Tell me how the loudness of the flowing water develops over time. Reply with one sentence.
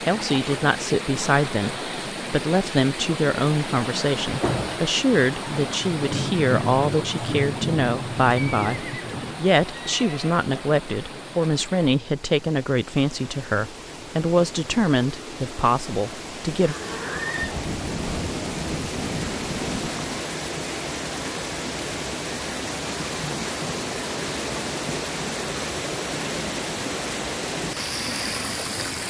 The loudness of the flowing water goes down, then up.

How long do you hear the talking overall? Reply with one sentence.
You can hear the talking for 17 seconds altogether.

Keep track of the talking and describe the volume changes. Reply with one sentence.
The loudness of the talking stays about the same.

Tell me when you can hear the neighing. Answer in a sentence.
You can hear the neighing from 8.3 to 10.4 s and from 16.6 to 17.6 s.